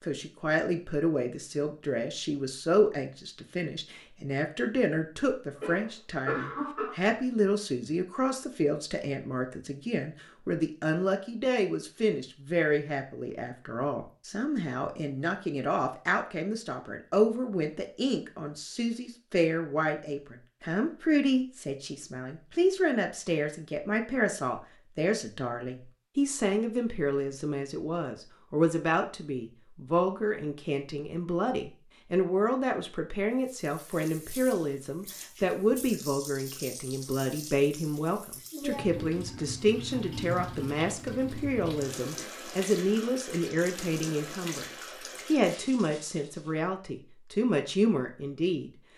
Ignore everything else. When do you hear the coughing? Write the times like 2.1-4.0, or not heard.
5.5-7.0.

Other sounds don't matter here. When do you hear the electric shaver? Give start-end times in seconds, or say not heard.
not heard.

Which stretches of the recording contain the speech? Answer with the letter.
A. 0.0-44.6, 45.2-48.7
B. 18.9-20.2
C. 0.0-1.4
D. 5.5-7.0
A.